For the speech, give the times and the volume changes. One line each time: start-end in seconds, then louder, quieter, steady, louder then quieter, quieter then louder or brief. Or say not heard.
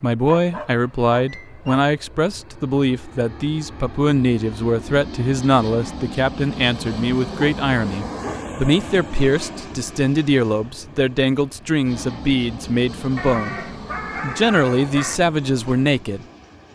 0.0-16.2 steady.